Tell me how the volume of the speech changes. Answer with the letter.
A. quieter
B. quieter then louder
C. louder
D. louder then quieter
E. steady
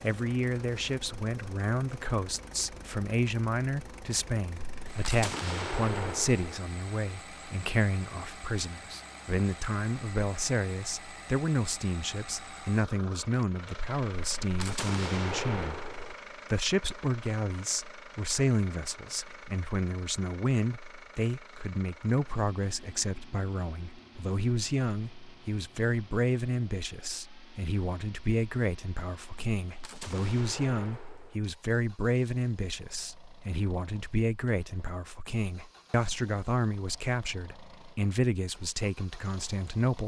E.